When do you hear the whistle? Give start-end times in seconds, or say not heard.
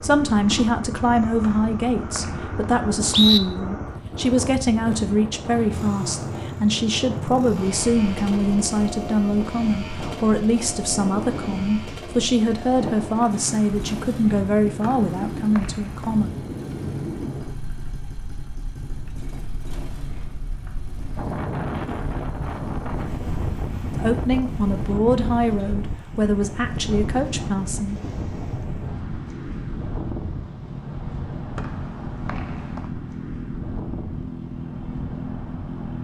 1.4-3.4, 14.8-16.1, 31.6-32.9.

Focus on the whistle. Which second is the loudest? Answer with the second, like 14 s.
3 s.